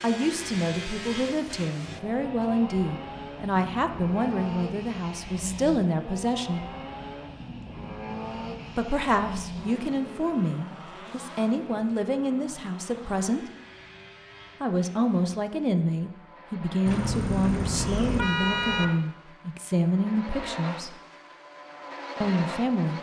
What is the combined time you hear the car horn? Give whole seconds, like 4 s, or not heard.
2 s.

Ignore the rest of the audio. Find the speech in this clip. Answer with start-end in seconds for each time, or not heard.
0.0-6.7, 8.8-13.5, 14.6-20.9, 22.2-22.9.